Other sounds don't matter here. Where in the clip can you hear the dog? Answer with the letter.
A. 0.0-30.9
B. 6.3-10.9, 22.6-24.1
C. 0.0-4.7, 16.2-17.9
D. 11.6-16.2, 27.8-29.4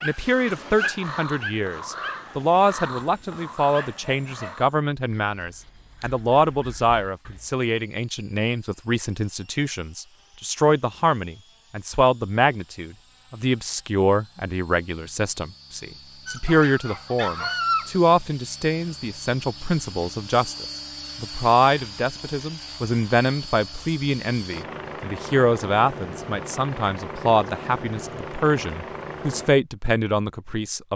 C.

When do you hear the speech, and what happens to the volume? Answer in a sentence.
You can hear the speech from 0.0 to 30.9 s, at a steady volume.